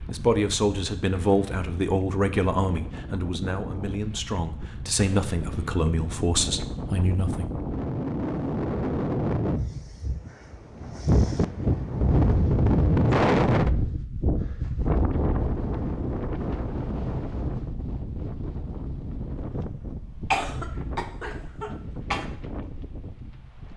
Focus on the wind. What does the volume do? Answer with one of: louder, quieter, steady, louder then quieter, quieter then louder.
louder then quieter.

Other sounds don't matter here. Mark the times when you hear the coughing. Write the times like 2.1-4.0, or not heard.
20.3-22.2.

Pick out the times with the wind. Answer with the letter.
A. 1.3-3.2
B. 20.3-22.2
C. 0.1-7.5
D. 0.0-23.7
D.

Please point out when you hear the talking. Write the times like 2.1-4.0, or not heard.
0.1-7.5.